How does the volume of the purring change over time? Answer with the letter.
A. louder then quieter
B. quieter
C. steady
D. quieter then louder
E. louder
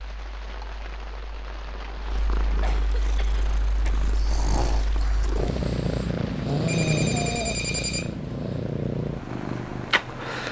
E.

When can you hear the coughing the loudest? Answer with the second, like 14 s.
3 s.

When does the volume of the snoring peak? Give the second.
7 s.